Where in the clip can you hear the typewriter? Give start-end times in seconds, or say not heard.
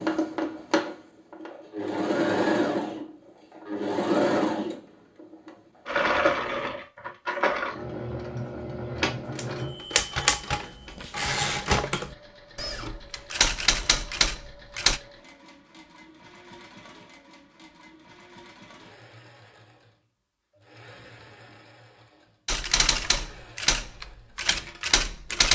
9.2-15.0, 22.4-25.5.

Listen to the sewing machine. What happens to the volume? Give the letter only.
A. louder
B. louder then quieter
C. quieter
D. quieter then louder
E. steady
C.